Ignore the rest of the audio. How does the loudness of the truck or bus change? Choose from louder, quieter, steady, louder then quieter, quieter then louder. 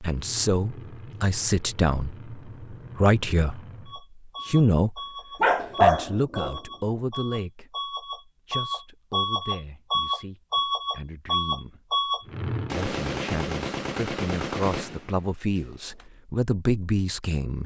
louder.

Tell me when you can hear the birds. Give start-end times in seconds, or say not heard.
not heard.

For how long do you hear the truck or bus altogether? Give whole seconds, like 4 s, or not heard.
13 s.